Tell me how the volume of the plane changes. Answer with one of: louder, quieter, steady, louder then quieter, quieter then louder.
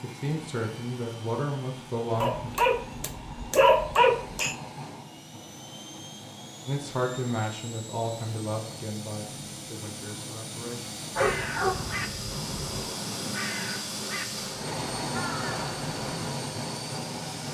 louder.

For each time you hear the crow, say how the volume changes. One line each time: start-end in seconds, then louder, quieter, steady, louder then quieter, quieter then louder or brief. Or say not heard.
11.1-16.4 steady.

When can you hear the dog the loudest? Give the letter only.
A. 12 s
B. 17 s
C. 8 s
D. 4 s
D.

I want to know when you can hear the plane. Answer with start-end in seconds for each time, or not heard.
0.0-17.5.